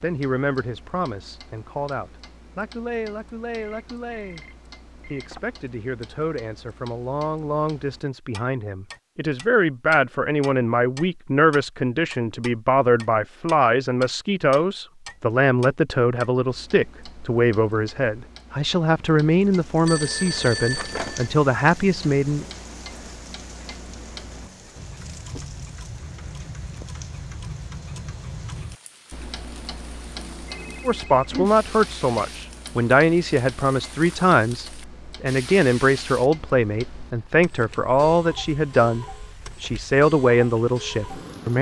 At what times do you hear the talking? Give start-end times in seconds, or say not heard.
0.0-4.5, 5.1-22.4, 30.9-41.5.